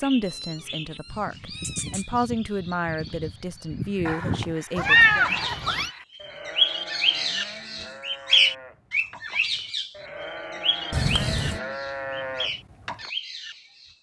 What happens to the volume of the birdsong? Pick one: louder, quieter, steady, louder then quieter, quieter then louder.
louder then quieter.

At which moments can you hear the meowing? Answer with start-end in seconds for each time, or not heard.
0.2-2.0, 4.8-5.9, 10.9-11.6.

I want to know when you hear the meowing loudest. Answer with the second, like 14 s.
5 s.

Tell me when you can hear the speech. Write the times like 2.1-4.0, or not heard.
0.0-5.2.